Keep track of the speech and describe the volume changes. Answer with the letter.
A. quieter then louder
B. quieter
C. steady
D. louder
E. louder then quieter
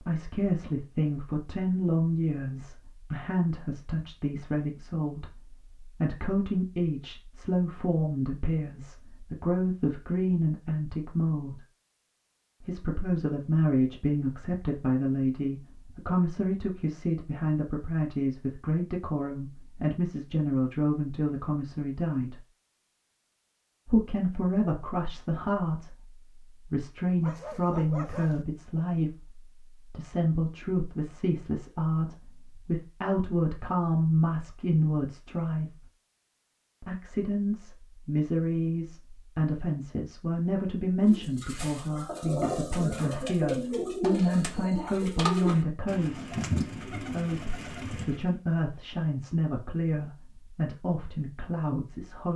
C.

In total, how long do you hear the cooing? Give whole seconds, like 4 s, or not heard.
7 s.